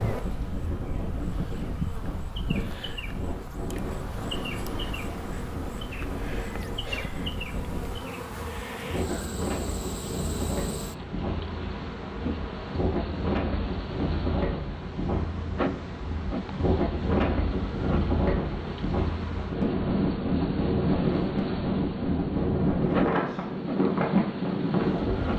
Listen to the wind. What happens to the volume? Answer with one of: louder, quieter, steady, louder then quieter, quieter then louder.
louder.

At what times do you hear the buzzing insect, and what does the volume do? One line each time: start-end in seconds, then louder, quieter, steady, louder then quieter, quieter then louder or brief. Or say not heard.
0.0-25.3 steady.